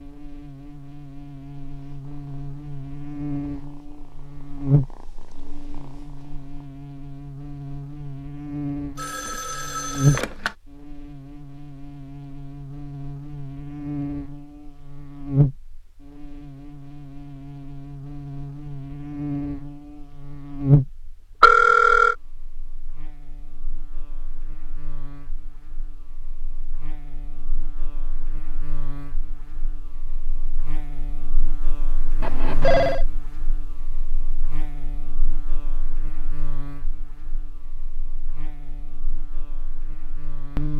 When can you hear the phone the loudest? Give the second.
22 s.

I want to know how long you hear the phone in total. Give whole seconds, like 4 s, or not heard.
3 s.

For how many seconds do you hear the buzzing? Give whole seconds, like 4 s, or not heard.
41 s.